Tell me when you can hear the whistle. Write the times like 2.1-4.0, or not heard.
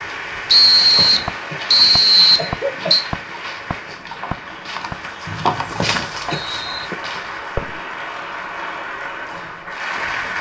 0.5-3.0, 5.2-6.9.